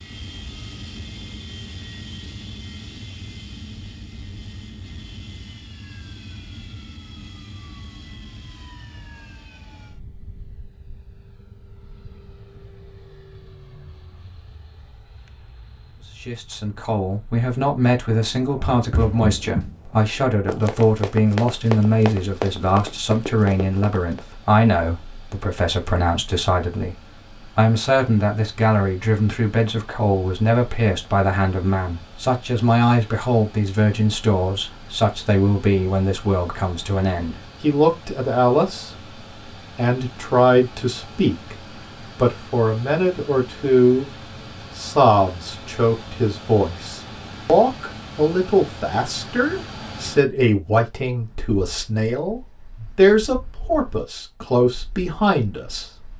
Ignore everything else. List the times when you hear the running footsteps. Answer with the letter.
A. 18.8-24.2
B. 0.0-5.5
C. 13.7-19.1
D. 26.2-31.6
A.